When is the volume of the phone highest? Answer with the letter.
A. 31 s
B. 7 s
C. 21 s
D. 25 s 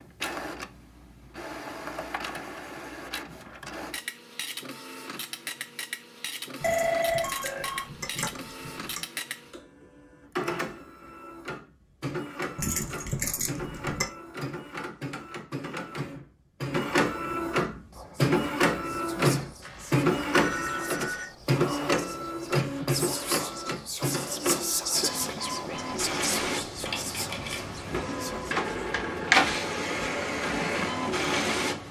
B.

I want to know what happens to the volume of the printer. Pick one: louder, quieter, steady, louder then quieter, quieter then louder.
louder.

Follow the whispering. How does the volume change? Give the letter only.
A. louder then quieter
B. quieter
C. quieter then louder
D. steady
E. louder
A.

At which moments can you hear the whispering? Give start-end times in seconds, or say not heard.
17.9-28.9.